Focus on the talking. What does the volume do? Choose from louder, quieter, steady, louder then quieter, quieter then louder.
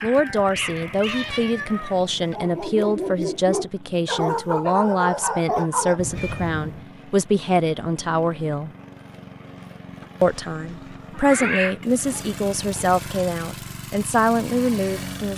steady.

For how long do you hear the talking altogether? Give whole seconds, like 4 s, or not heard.
14 s.